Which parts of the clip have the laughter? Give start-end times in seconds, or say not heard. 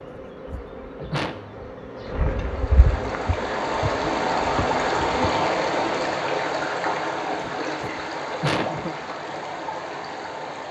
0.1-1.4, 7.4-8.9.